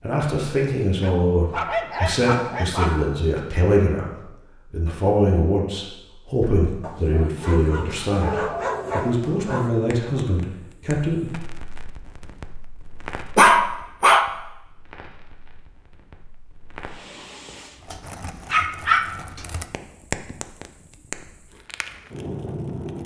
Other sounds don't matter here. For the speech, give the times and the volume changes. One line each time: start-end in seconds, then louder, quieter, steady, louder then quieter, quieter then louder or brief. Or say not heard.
0.0-11.3 steady.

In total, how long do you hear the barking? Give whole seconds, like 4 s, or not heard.
7 s.